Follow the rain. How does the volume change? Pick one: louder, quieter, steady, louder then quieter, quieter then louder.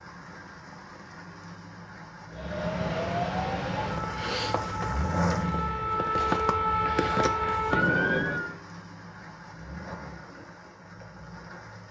louder then quieter.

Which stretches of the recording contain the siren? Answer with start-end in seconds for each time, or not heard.
2.3-8.6.